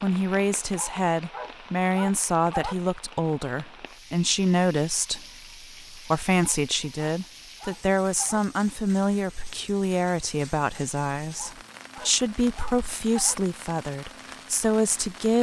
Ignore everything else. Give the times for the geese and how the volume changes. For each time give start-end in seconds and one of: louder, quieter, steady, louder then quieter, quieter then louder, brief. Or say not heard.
not heard.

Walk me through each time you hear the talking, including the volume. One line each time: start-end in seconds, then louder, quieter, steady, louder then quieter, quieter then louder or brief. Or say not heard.
0.0-15.3 steady.